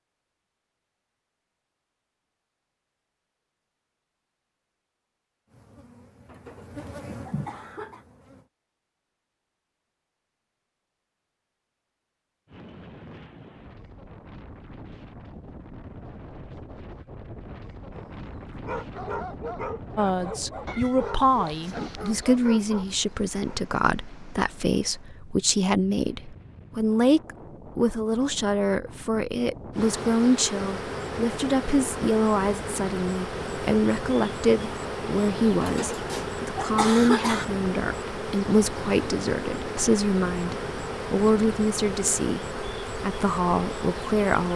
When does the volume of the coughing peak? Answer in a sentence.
The volume of the coughing peaks at 37 seconds.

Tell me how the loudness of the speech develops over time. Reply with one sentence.
The loudness of the speech stays about the same.